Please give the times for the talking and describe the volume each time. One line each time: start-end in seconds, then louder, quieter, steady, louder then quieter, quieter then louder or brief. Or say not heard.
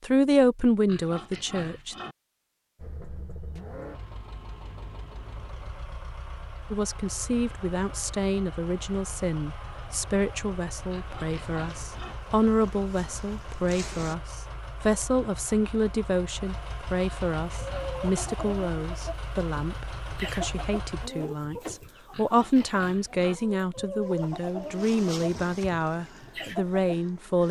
0.0-1.9 brief
6.7-27.4 steady.